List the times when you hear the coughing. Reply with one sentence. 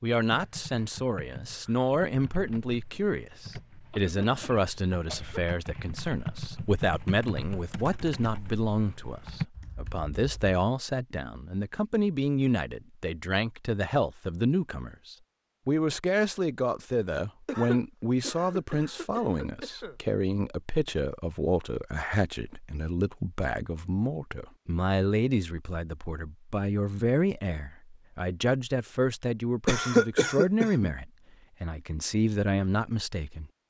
You can hear the coughing from 3.9 to 5.4 s, from 17.4 to 19.9 s and from 29.6 to 30.9 s.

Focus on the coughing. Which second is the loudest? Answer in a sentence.
The loudest moment of the coughing is at 30 seconds.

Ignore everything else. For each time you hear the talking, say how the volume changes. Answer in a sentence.
The talking can be heard from 0.0 to 33.5 s, at a steady volume.